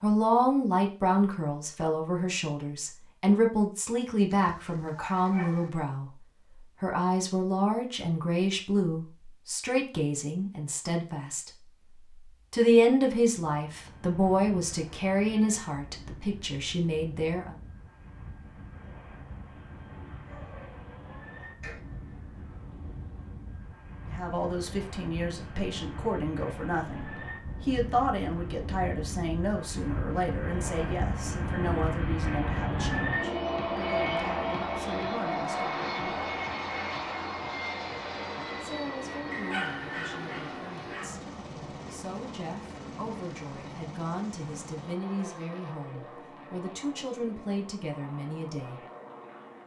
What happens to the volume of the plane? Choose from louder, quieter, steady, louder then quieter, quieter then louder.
louder then quieter.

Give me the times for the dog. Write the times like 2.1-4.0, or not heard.
4.3-5.7, 20.2-21.8, 39.3-41.2.